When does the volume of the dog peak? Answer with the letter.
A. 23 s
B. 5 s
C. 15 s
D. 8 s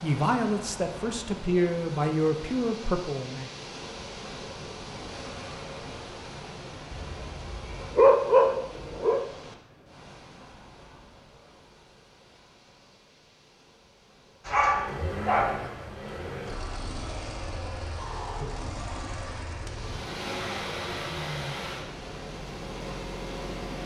D.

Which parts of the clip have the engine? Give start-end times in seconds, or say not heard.
14.4-23.8.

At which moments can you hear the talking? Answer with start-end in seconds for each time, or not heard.
0.0-3.5.